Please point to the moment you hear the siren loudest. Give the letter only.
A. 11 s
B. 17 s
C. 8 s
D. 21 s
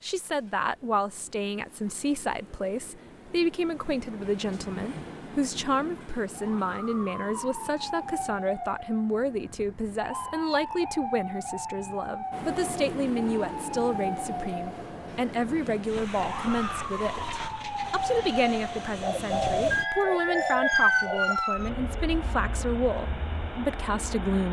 D.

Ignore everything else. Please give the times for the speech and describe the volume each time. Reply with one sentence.
You can hear the speech from 0.0 to 24.4 s, at a steady volume.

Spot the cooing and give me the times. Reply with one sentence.
You can hear the cooing from 19.0 to 21.4 s.